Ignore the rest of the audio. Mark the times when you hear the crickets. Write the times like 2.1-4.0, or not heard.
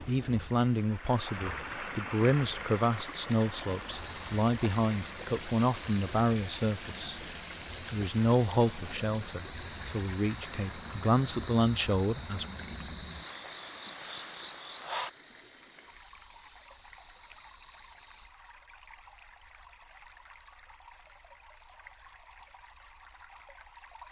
0.0-18.3.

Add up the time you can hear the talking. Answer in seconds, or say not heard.
12 s.